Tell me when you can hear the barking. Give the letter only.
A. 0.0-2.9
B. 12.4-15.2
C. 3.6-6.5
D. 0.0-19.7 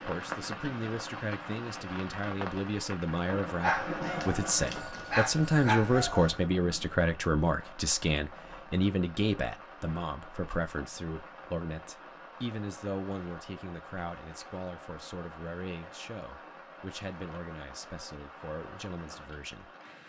C.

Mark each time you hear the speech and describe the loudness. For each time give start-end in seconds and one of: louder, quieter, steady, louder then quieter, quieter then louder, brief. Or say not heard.
0.0-19.7 louder then quieter.